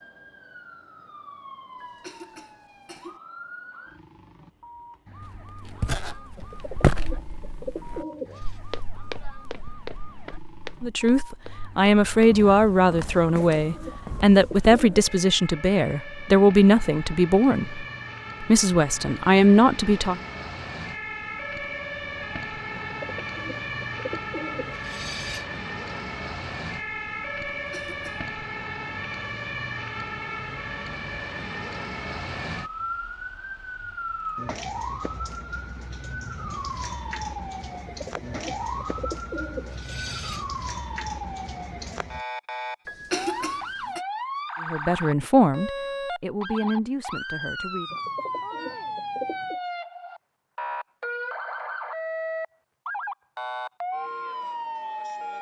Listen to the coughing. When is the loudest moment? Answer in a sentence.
The volume of the coughing peaks at 43 seconds.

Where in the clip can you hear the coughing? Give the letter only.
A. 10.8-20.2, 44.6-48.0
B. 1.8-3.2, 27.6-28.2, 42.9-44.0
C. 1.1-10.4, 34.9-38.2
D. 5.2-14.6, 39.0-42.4
B.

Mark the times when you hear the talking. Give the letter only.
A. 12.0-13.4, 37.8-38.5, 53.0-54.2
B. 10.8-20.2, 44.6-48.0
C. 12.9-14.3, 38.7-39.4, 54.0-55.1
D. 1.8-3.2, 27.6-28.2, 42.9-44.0
B.